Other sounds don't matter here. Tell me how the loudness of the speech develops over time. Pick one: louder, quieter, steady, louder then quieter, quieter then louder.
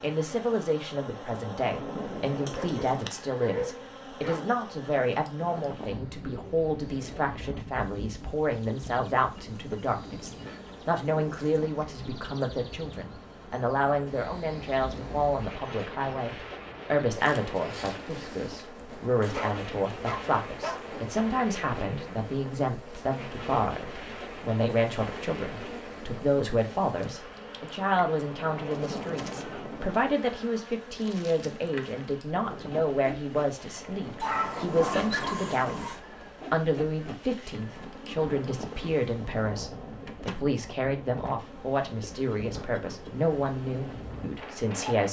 steady.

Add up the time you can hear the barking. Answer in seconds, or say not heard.
5 s.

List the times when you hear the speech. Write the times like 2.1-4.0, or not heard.
0.0-45.0.